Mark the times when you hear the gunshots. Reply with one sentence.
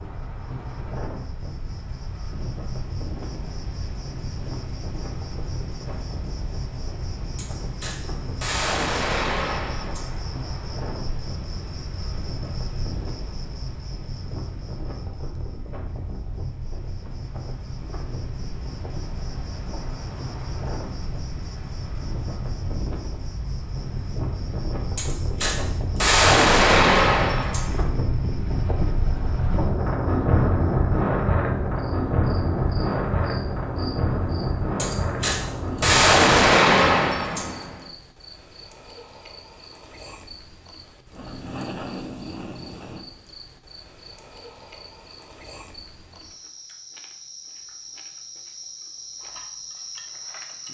The gunshots can be heard from 7.3 to 10.3 s, from 24.9 to 27.8 s and from 34.8 to 37.8 s.